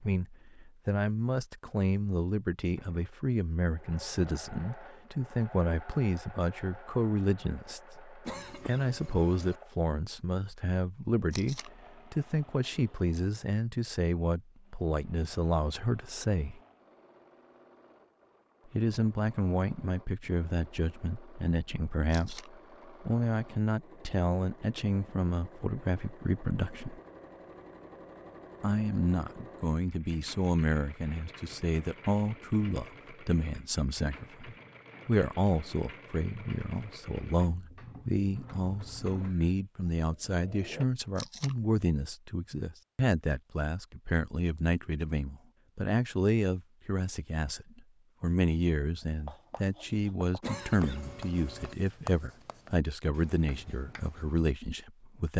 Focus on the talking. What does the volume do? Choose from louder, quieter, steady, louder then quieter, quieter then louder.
steady.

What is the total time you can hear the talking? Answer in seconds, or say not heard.
52 s.